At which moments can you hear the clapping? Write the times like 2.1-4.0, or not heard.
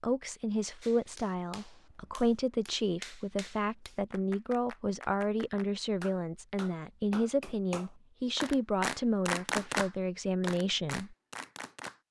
0.8-12.0.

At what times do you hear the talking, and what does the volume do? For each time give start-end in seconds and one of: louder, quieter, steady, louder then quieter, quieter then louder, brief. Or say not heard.
0.0-11.2 steady.